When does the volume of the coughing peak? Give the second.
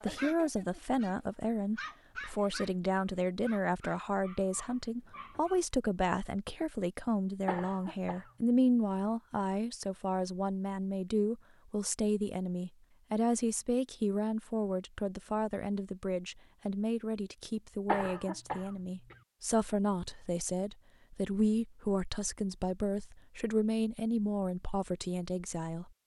18 s.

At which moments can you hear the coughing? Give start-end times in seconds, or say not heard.
7.5-8.3, 17.9-19.1.